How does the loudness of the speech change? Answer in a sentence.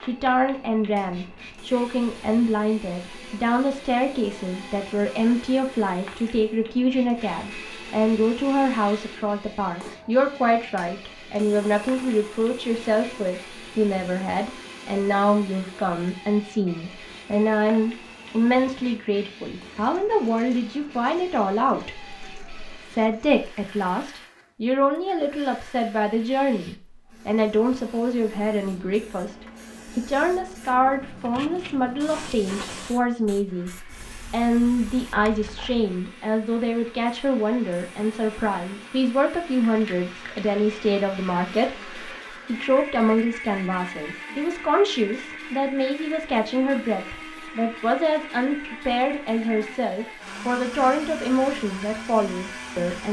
The volume of the speech stays about the same.